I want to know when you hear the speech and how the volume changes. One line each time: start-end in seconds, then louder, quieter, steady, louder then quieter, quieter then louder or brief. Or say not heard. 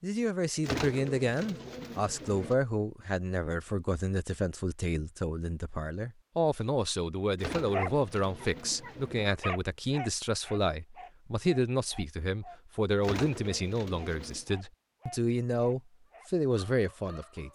0.0-17.5 steady.